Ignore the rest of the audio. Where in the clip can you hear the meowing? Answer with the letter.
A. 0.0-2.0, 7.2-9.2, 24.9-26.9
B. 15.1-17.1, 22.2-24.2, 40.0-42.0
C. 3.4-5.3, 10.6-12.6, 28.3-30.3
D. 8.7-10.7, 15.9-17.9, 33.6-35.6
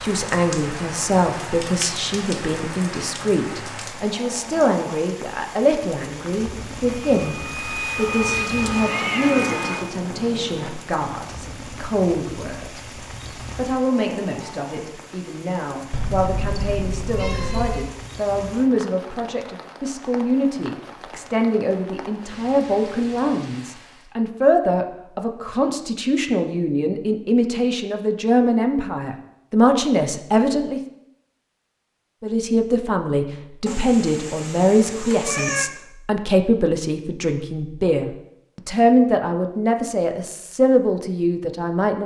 D.